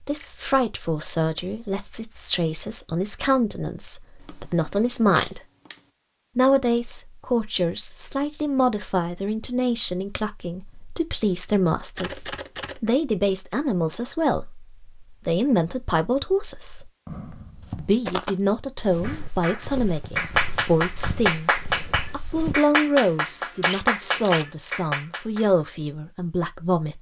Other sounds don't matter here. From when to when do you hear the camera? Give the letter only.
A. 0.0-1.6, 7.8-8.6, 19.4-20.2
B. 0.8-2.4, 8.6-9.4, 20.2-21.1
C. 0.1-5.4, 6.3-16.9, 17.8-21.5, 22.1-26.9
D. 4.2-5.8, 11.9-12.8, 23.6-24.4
D.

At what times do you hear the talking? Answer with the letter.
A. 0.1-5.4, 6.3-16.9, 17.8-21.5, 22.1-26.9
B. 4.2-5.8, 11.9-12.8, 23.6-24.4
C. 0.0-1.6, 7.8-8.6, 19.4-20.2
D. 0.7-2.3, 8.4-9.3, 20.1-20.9
A.